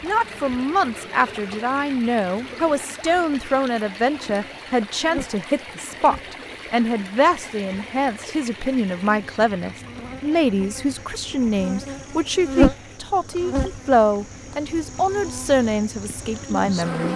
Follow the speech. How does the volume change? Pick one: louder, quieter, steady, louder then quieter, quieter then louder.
steady.